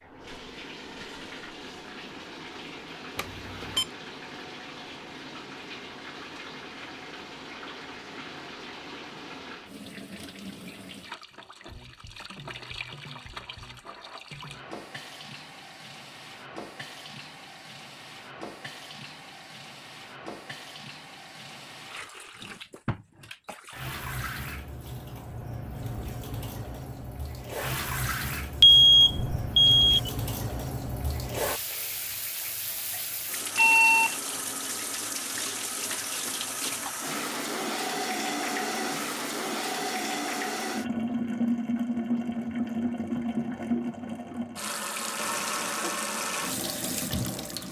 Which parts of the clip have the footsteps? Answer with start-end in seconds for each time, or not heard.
not heard.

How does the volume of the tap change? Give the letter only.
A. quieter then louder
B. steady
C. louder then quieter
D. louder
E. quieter
D.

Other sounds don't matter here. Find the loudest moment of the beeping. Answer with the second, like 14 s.
29 s.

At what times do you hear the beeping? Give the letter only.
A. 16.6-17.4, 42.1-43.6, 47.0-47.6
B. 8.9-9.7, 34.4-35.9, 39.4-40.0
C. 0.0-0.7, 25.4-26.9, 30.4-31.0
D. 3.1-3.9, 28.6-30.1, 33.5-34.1
D.